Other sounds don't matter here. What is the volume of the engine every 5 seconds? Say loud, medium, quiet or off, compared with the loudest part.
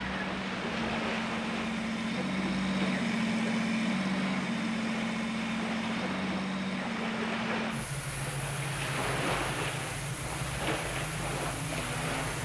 loud, loud, medium.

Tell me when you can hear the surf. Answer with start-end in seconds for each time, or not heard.
0.0-12.4.